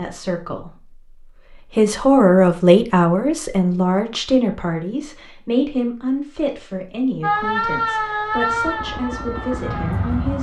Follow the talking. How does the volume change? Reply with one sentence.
The loudness of the talking goes down.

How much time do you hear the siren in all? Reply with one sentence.
You can hear the siren for 3 seconds altogether.